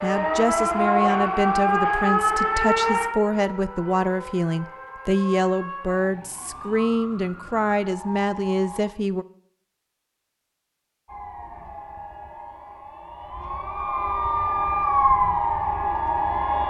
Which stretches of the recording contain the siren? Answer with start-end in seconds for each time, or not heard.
0.0-8.9, 11.1-16.6.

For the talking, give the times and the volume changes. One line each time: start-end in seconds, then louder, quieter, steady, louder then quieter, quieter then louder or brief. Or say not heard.
0.0-9.2 steady.